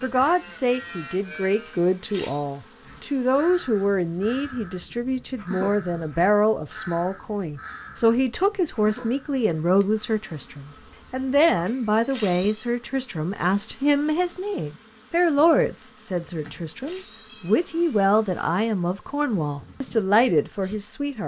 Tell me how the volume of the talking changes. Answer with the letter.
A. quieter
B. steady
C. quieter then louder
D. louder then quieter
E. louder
B.